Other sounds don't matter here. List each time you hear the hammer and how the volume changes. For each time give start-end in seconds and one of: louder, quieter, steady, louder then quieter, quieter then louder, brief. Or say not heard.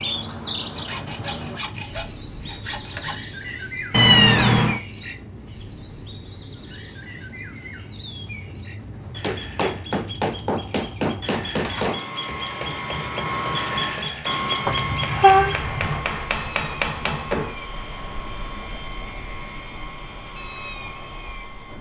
9.1-17.6 quieter then louder.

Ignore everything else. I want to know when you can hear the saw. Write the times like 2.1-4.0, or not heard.
0.8-3.2.